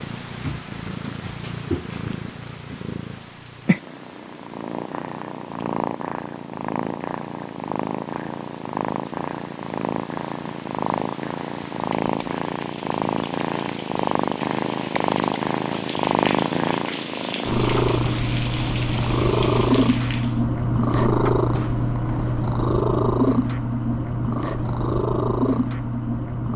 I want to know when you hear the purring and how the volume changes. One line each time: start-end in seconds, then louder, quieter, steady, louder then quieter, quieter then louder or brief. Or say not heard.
0.0-26.5 louder.